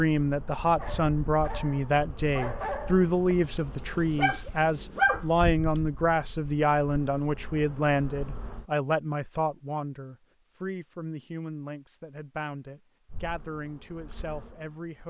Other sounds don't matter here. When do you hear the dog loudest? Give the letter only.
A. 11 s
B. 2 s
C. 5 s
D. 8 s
C.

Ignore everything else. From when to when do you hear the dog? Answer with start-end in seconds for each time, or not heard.
0.8-5.8.